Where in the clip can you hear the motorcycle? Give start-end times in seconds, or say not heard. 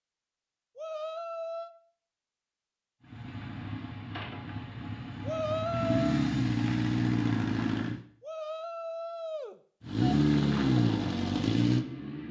3.0-8.0, 9.8-12.2.